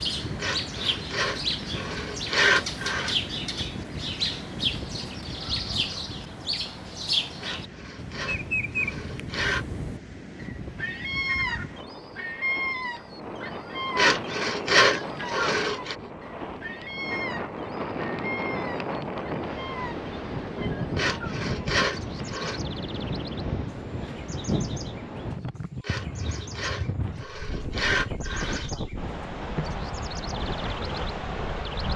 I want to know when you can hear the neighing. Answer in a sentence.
The neighing can't be heard in this clip.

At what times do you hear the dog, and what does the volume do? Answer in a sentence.
The dog can't be heard in this clip.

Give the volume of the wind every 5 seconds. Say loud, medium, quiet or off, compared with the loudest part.
medium, medium, medium, loud, loud, loud, loud.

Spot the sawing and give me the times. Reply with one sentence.
You can hear the sawing from 0.4 to 3.1 s, from 7.4 to 9.7 s, from 13.9 to 15.9 s, from 20.9 to 22.6 s and from 25.8 to 28.7 s.